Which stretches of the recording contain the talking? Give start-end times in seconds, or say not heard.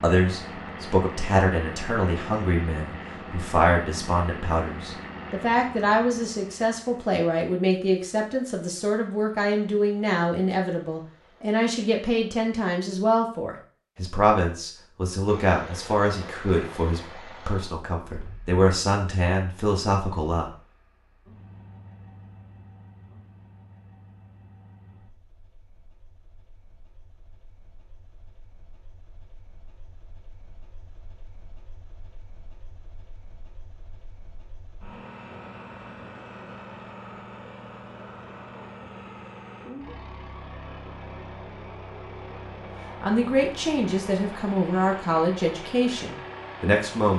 0.0-20.5, 43.0-47.1.